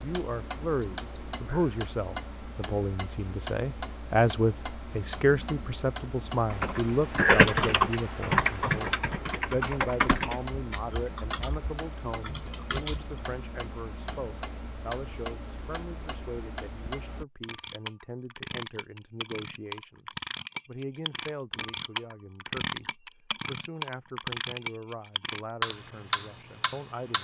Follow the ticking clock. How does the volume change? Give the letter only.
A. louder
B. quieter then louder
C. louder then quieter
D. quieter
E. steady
A.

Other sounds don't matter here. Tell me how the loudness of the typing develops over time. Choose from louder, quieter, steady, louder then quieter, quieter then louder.
quieter.